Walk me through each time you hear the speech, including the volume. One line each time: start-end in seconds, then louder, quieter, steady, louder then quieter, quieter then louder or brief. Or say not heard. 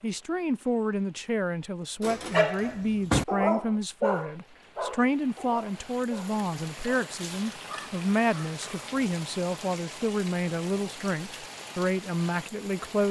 0.0-13.0 steady.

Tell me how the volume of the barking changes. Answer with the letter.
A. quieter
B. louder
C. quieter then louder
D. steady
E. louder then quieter
A.